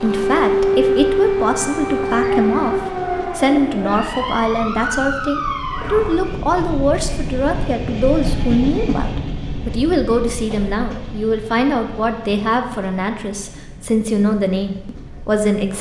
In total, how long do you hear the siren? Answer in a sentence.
The siren can be heard for 6 seconds in total.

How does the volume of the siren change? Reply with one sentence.
The loudness of the siren goes down.